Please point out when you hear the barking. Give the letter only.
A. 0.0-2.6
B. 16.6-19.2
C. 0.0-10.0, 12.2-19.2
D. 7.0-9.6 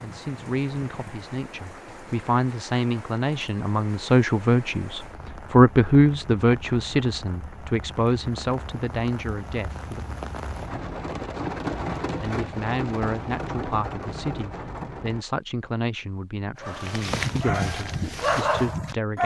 B.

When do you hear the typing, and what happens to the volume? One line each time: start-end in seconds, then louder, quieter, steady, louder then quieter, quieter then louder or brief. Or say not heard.
not heard.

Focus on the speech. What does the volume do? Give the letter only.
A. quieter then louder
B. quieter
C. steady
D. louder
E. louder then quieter
E.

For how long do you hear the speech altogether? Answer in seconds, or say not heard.
17 s.